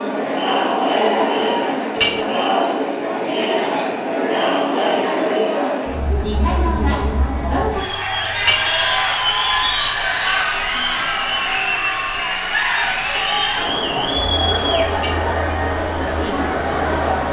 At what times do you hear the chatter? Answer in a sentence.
You can hear the chatter from 0.0 to 17.2 s.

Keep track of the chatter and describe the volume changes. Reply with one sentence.
The volume of the chatter stays about the same.